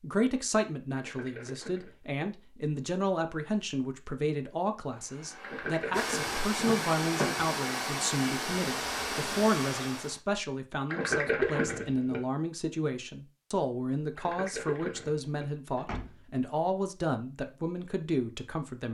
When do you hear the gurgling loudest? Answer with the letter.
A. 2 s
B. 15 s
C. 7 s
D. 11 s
D.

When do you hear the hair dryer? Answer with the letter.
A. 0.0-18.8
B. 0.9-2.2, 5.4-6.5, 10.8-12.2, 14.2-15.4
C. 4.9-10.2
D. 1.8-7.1
C.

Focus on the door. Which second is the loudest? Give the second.
7 s.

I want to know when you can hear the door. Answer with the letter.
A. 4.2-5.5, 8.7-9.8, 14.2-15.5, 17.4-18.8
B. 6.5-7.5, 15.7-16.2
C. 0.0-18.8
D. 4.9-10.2
B.